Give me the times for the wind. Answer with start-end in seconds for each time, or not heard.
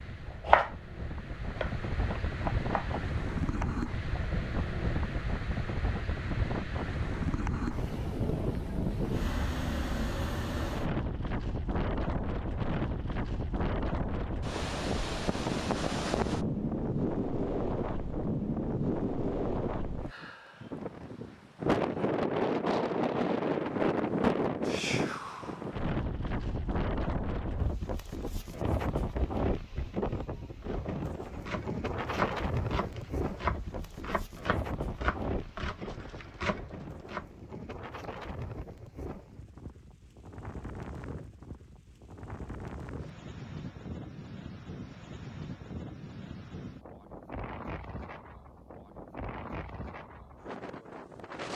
0.0-51.5.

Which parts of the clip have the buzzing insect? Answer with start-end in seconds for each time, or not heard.
not heard.